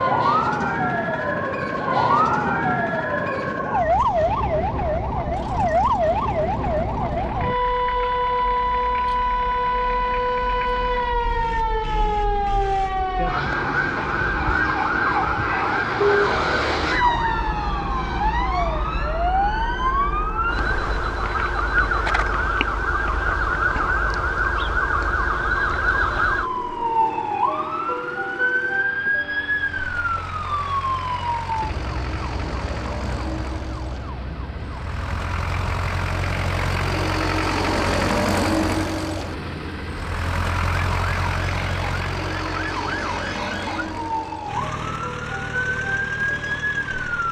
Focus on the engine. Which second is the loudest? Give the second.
38 s.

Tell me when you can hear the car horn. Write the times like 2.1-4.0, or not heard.
15.9-16.4.